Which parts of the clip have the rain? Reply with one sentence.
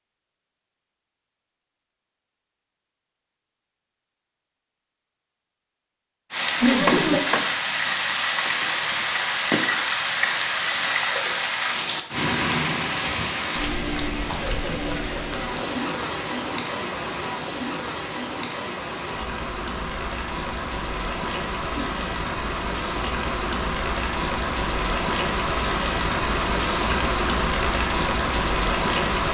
You can hear the rain from 6.3 to 29.2 s.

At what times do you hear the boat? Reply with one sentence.
You can't hear the boat here.